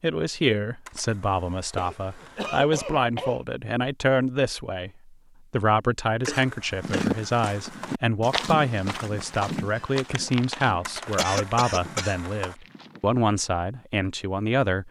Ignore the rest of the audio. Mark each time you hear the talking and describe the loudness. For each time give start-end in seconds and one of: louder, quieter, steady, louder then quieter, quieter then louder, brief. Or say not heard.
0.0-14.8 steady.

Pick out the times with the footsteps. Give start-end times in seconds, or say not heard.
6.8-13.2.